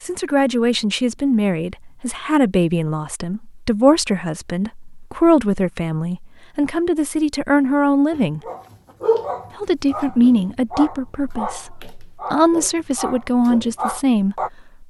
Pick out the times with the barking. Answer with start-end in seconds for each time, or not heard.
8.1-14.5.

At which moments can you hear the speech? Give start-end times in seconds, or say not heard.
0.0-8.4, 9.6-14.8.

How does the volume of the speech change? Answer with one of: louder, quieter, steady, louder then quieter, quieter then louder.
steady.